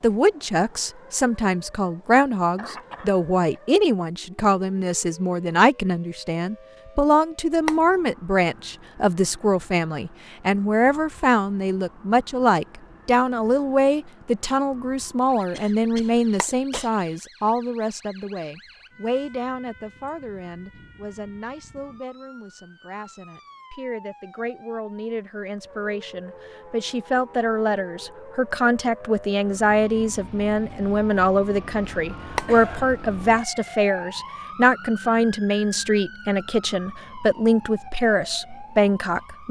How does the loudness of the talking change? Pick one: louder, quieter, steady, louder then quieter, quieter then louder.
quieter then louder.